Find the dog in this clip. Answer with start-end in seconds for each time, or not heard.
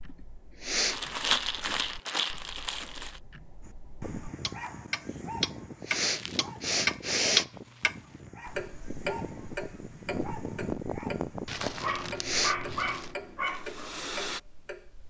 3.6-14.4.